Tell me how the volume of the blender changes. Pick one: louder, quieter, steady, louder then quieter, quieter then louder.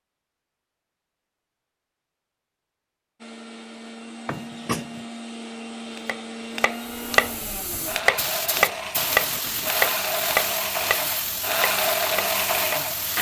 louder.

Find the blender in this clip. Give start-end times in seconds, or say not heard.
3.2-13.1.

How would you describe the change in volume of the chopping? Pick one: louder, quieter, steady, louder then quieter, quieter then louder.
quieter.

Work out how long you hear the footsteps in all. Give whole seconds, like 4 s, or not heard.
not heard.